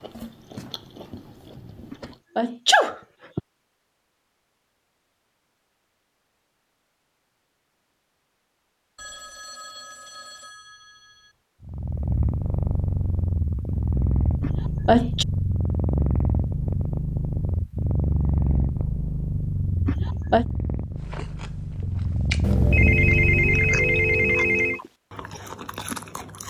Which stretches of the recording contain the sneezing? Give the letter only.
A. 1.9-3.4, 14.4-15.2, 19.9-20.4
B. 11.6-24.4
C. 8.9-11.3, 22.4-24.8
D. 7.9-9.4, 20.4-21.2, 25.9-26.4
A.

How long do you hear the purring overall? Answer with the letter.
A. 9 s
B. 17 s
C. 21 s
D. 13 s
D.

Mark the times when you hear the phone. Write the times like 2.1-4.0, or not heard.
8.9-11.3, 22.4-24.8.